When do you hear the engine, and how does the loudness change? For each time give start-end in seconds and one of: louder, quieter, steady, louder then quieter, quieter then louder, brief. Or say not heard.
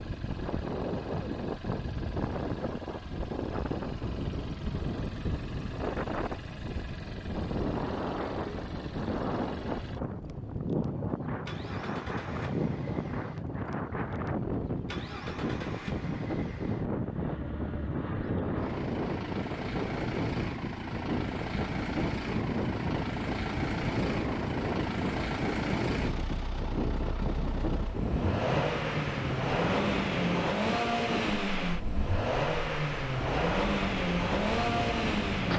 0.0-35.5 louder.